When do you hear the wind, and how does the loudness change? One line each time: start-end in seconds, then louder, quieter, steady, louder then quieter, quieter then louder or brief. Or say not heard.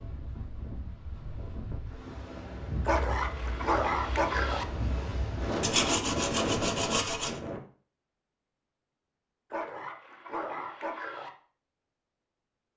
0.0-7.6 louder.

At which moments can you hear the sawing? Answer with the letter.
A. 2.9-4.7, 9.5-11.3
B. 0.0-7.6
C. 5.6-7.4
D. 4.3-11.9
C.